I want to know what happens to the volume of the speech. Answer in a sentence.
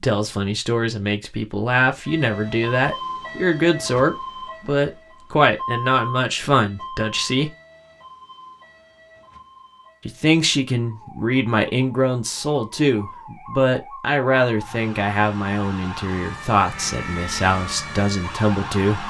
The loudness of the speech stays about the same.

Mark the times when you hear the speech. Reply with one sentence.
The speech can be heard from 0.0 to 7.5 s and from 10.1 to 19.0 s.